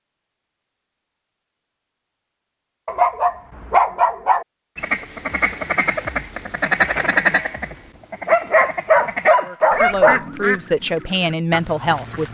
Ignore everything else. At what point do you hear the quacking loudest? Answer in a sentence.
The volume of the quacking peaks at 7 seconds.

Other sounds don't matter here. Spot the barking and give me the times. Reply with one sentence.
The barking can be heard from 2.9 to 4.5 s and from 8.2 to 10.2 s.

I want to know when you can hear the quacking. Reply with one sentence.
The quacking can be heard from 4.8 to 12.2 s.